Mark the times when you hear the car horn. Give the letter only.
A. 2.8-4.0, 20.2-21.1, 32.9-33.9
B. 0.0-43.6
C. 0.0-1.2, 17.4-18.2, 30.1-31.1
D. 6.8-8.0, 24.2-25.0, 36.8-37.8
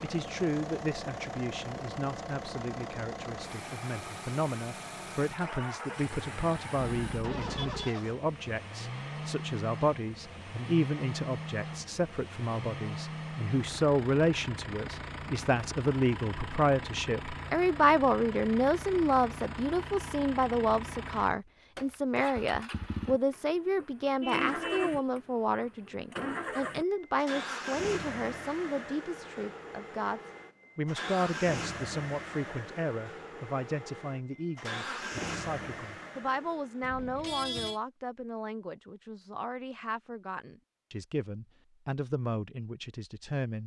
D.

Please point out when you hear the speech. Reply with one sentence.
You can hear the speech from 0.0 to 43.6 s.